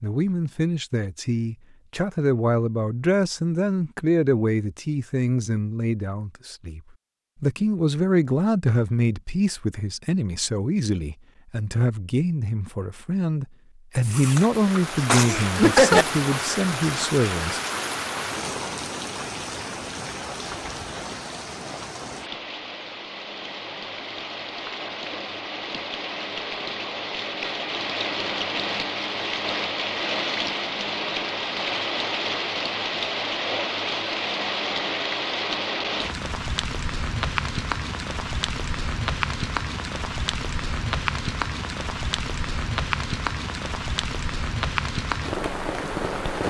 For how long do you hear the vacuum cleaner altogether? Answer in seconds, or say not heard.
not heard.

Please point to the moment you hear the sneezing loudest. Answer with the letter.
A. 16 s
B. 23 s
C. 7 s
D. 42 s
A.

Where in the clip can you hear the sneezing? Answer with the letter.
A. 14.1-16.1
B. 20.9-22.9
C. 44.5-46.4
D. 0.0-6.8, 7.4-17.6
A.